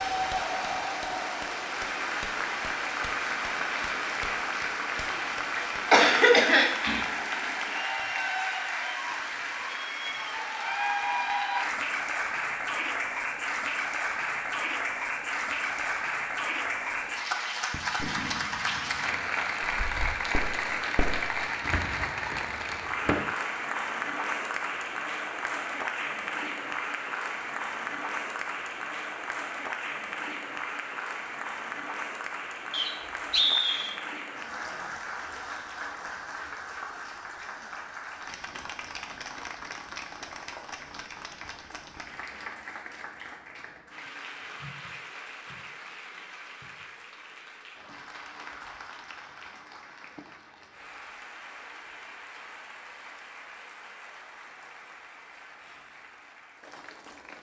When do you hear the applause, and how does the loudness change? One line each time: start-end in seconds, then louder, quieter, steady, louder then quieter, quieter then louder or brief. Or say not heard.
0.0-57.3 quieter.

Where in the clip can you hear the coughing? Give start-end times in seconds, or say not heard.
5.5-7.0.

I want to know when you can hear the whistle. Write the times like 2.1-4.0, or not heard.
32.7-34.0.